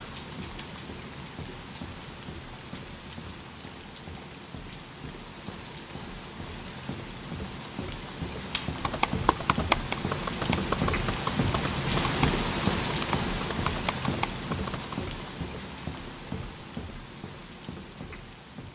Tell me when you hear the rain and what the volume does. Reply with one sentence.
The rain can be heard from 0.0 to 18.7 s, getting louder then quieter.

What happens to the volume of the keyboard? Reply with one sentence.
The volume of the keyboard goes down.